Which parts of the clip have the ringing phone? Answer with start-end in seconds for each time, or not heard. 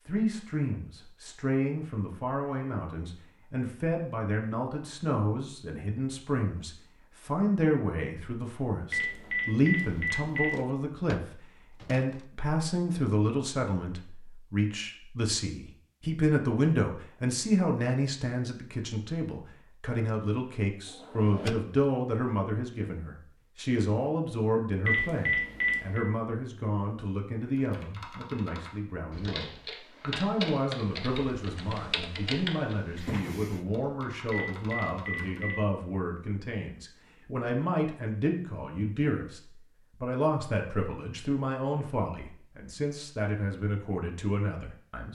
8.9-10.6, 24.9-26.1, 34.3-35.6.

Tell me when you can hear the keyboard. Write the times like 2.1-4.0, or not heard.
27.6-35.4.